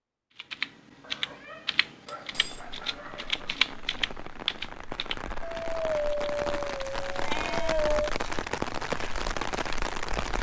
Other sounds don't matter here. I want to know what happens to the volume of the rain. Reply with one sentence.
The loudness of the rain goes up.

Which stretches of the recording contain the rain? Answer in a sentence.
You can hear the rain from 2.3 to 10.3 s.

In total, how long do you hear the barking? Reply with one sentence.
The barking can be heard for 5 seconds in total.